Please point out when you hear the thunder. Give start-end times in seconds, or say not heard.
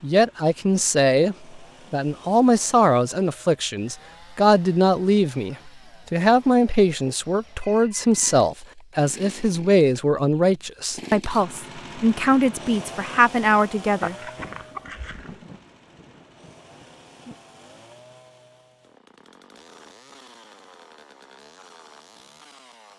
14.3-17.4.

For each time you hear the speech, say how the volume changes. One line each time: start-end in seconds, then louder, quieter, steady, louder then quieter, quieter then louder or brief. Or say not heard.
0.0-14.2 steady.